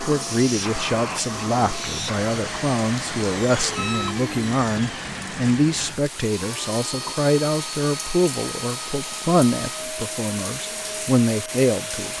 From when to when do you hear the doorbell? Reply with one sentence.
The doorbell can be heard from 3.5 to 4.2 s.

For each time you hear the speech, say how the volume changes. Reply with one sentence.
You can hear the speech from 0.0 to 12.1 s, at a steady volume.